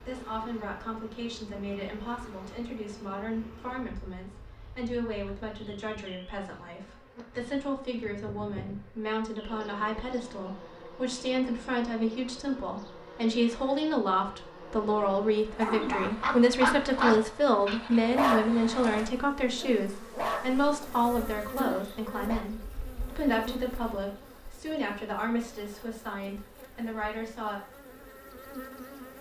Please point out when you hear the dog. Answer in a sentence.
The dog can be heard from 15.6 to 18.6 s, from 19.6 to 20.6 s and from 21.6 to 22.4 s.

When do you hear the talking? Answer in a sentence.
The talking can be heard from 0.0 to 27.6 s.